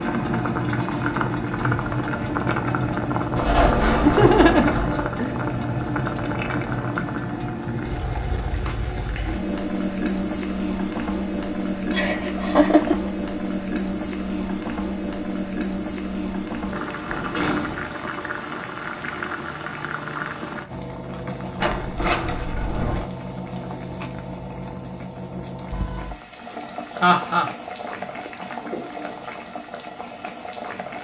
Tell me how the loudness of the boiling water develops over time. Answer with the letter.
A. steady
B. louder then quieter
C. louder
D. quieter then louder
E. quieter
E.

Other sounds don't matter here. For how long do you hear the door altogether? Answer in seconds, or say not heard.
4 s.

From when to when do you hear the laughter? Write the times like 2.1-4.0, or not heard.
3.6-5.3, 11.9-13.1, 26.6-27.5.